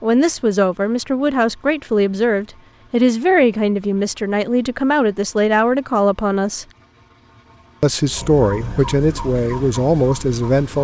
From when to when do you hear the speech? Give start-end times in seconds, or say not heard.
0.0-6.7, 7.8-10.8.